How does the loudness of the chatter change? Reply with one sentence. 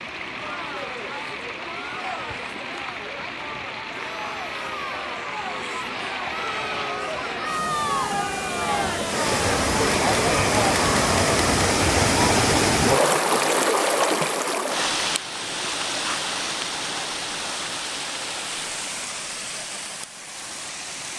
The volume of the chatter goes up.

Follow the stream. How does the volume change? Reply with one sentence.
The volume of the stream goes up, then down.